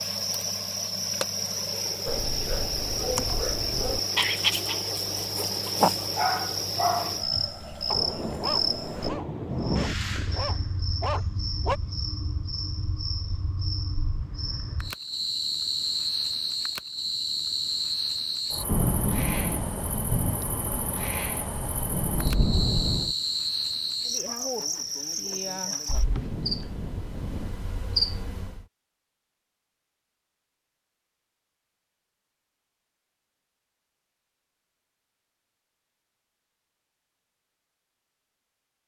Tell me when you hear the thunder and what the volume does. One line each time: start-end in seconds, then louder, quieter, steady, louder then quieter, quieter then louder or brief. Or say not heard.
7.9-9.9 brief
18.6-23.1 quieter then louder
26.1-27.5 brief.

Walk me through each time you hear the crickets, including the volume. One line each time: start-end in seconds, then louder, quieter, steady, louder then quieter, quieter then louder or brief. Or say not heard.
0.0-28.6 steady.